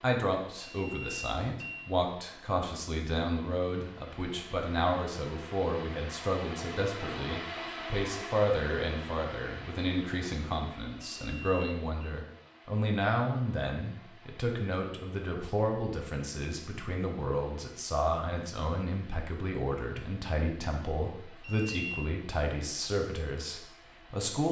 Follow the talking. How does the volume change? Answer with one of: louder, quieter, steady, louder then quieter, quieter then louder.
steady.